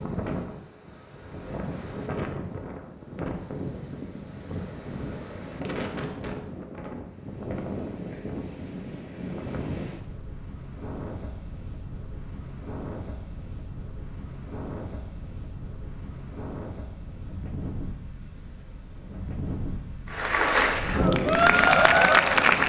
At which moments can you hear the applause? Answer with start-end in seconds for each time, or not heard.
20.1-22.6.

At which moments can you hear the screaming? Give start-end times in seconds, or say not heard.
not heard.